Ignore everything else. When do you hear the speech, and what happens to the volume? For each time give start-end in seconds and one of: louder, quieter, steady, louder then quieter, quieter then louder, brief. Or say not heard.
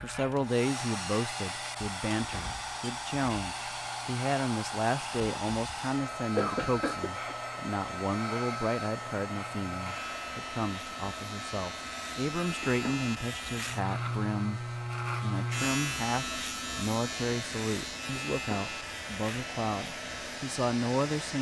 0.0-21.3 steady.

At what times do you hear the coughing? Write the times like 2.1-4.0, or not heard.
6.3-7.3.